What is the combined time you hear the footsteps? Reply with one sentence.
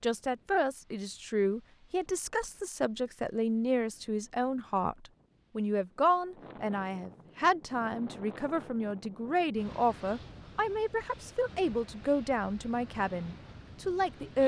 You can't hear the footsteps here.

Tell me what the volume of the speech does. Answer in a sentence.
The loudness of the speech stays about the same.